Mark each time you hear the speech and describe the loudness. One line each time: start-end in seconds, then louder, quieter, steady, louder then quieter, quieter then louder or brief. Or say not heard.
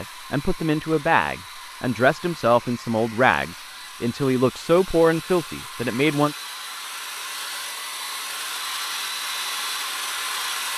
0.0-6.3 steady.